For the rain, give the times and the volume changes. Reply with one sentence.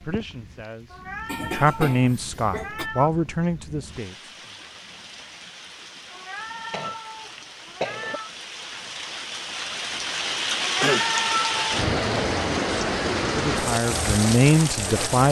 You can hear the rain from 0.0 to 15.2 s, getting louder.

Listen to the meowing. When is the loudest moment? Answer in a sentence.
The volume of the meowing peaks at 11 seconds.